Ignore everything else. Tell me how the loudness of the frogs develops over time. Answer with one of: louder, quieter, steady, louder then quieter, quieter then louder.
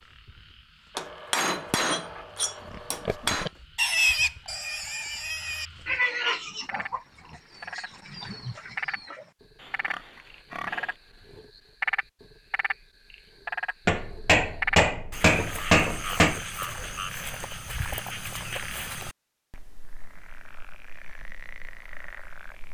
louder then quieter.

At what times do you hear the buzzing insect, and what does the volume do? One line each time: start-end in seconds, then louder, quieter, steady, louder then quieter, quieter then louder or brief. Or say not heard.
not heard.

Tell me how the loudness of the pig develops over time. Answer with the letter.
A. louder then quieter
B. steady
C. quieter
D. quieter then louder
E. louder
C.